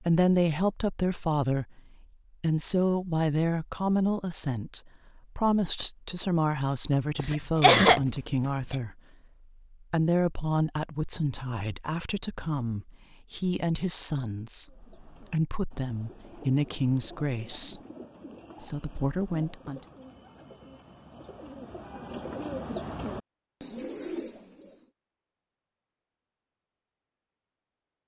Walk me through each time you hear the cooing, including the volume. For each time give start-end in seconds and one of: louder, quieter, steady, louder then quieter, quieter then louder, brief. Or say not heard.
14.7-24.9 louder.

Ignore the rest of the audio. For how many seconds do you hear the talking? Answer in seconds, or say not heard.
18 s.